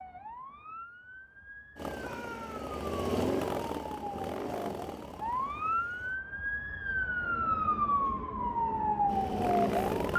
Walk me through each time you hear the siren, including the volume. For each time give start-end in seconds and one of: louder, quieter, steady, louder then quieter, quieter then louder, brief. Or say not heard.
0.0-10.1 louder.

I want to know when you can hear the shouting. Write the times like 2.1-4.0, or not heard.
1.9-2.7.